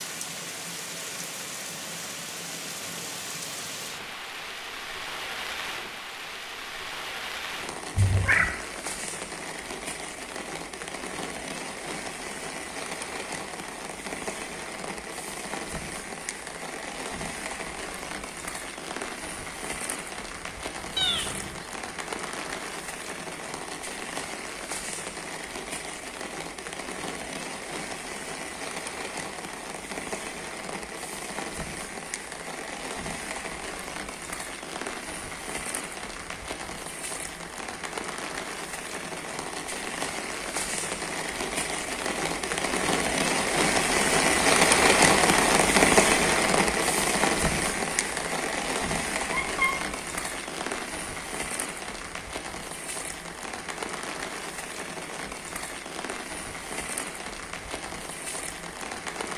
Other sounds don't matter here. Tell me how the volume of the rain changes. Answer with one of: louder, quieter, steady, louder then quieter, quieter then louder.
louder then quieter.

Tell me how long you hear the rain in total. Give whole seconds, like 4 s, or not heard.
59 s.